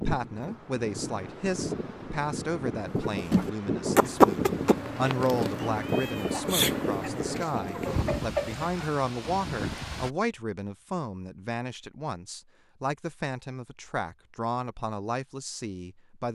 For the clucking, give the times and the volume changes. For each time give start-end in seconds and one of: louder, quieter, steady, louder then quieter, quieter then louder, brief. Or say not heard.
3.0-8.8 quieter then louder.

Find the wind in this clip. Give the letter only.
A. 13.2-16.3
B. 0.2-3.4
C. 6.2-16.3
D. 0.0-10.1
D.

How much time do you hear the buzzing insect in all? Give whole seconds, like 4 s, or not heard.
3 s.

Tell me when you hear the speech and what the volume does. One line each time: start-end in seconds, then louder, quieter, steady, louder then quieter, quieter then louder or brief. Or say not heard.
0.0-16.3 steady.